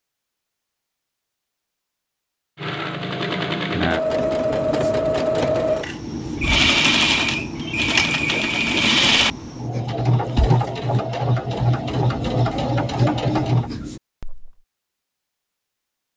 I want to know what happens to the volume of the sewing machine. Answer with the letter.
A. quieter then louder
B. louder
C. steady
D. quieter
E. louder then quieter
C.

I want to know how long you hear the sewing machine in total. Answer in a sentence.
You can hear the sewing machine for 11 seconds altogether.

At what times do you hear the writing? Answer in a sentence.
The writing can be heard from 4.0 to 14.6 s.